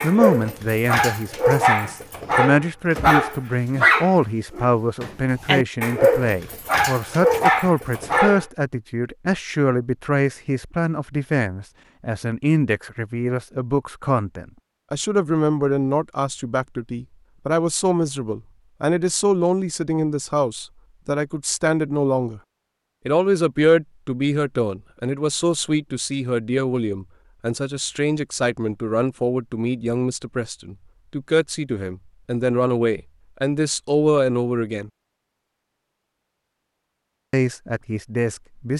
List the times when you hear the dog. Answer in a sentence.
The dog can be heard from 0.0 to 8.4 s.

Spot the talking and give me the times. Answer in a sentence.
The talking can be heard from 0.0 to 22.4 s, from 23.1 to 34.9 s and from 37.3 to 38.7 s.